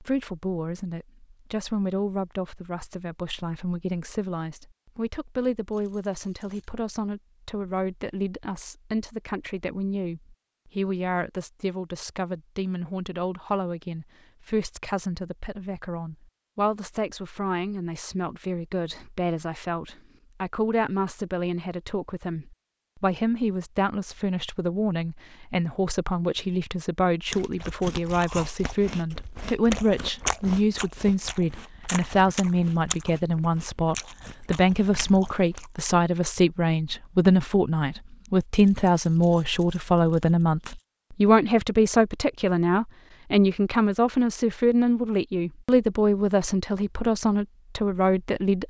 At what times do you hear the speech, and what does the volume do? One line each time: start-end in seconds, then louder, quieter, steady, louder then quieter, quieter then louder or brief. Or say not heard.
0.0-48.6 louder.